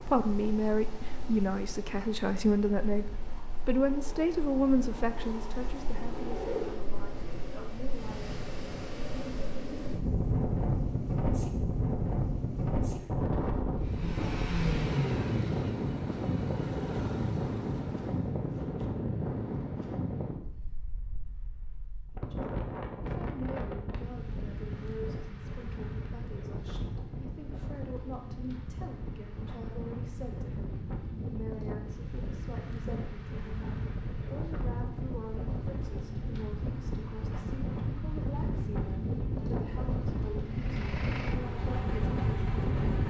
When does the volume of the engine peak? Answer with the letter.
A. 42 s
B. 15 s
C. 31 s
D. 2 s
B.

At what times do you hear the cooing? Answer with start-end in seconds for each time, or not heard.
not heard.